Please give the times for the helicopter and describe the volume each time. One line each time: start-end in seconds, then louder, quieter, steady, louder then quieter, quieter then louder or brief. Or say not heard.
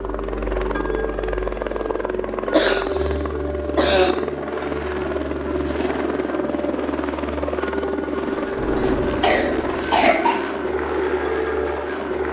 0.0-12.2 steady.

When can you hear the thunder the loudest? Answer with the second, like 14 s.
9 s.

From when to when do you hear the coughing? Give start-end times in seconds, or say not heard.
2.5-4.2, 8.8-10.4.